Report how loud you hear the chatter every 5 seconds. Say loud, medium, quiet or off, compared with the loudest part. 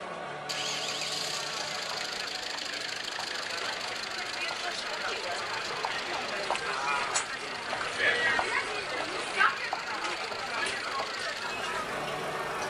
medium, loud, loud.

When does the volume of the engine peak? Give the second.
1 s.